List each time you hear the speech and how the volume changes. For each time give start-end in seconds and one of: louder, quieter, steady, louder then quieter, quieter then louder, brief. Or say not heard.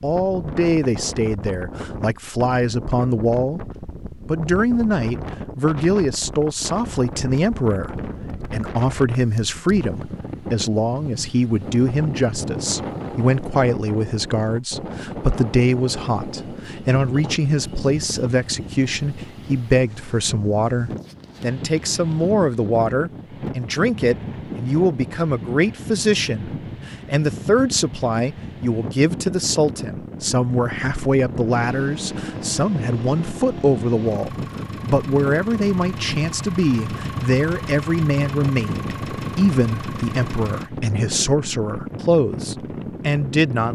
0.0-43.7 steady.